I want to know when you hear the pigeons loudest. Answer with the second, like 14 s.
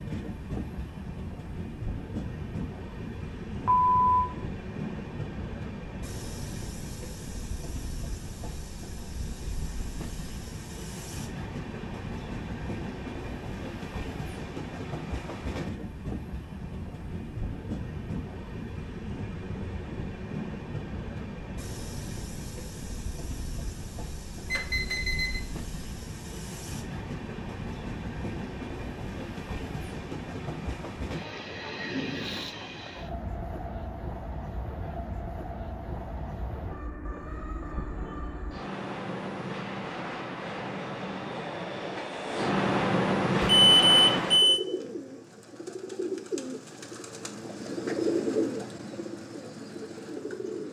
48 s.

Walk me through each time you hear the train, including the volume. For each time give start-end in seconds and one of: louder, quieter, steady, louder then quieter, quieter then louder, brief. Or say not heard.
0.0-44.5 louder.